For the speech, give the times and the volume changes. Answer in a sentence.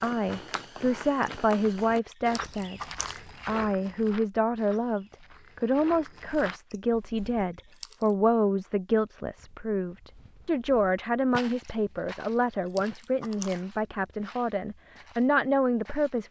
The speech can be heard from 0.0 to 16.2 s, at a steady volume.